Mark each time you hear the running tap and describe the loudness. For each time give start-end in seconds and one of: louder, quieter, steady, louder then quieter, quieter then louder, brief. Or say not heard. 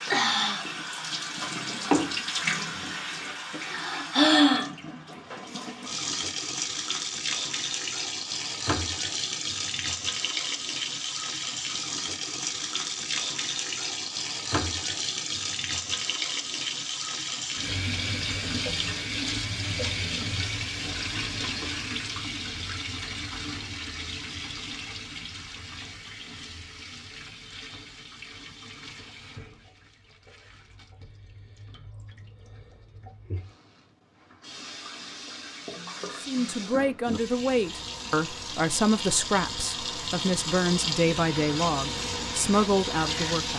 0.0-43.5 quieter then louder.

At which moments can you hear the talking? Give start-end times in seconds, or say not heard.
36.1-43.5.